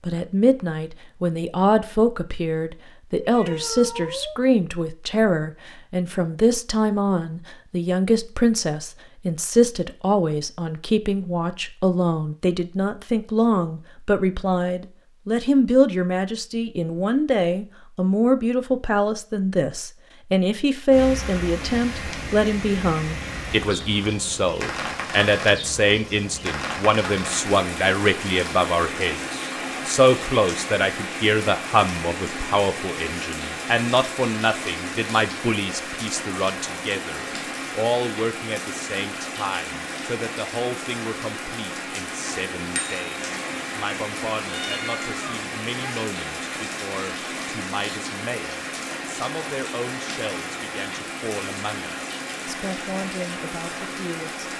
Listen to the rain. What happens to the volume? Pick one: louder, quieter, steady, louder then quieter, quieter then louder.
steady.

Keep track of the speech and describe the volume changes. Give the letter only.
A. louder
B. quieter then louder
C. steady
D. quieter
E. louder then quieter
D.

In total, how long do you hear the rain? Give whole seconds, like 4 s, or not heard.
34 s.